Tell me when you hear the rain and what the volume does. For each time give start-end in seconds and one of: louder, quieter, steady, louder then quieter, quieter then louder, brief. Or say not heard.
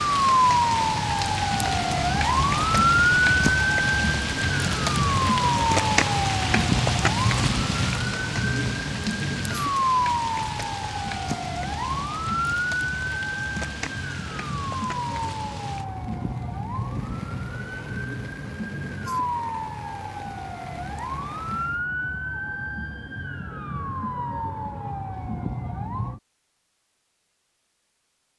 0.0-21.9 quieter.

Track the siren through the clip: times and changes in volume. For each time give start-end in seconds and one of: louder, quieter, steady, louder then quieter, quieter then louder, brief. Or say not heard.
0.0-26.2 quieter.